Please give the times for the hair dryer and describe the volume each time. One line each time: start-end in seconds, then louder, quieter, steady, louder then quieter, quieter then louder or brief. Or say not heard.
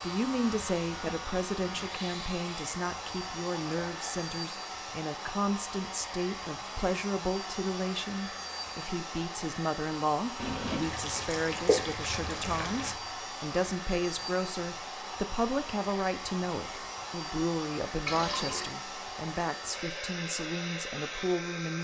0.0-21.7 steady.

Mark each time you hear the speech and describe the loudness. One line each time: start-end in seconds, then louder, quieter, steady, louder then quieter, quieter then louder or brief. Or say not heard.
0.0-21.7 steady.